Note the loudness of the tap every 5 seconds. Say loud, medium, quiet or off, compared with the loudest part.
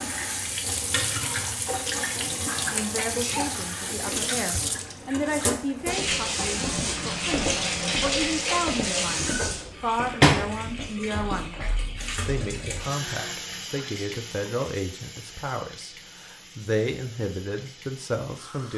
loud, loud, loud, quiet.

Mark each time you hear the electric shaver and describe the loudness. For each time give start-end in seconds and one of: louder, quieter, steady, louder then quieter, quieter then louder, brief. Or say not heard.
not heard.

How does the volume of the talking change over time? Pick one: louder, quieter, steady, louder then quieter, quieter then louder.
steady.